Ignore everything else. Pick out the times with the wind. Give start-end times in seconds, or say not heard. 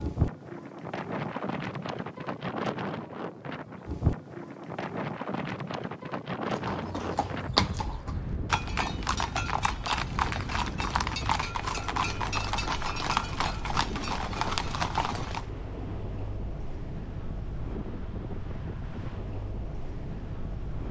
0.0-20.8.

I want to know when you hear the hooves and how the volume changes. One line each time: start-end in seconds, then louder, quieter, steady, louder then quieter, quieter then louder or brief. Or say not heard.
6.5-15.4 steady.